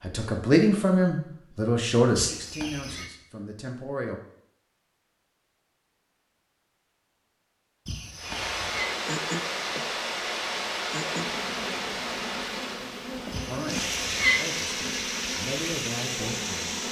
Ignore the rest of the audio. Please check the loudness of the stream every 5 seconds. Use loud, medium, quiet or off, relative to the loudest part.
off, loud, loud, loud.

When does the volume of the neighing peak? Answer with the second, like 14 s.
14 s.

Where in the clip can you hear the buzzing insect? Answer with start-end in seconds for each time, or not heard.
8.7-16.8.